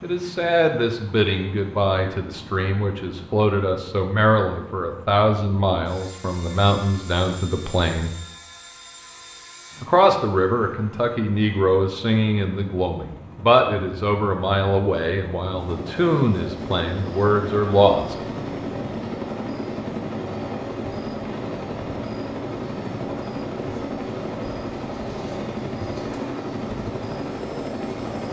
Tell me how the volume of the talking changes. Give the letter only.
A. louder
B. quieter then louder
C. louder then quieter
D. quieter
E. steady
E.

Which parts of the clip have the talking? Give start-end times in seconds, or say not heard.
0.0-8.2, 9.8-18.1.